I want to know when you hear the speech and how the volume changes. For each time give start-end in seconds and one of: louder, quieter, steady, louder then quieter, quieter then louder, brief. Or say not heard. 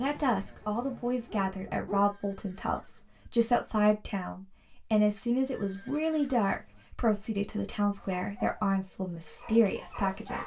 0.0-10.4 steady.